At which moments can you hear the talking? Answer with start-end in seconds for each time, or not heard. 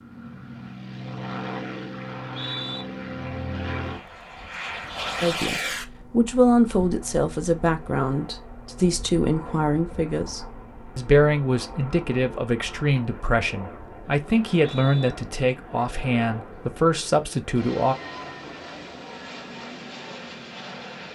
5.2-17.9.